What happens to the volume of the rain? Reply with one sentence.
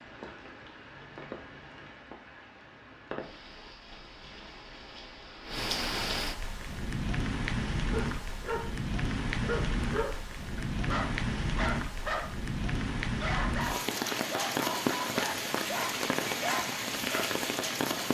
The loudness of the rain goes up.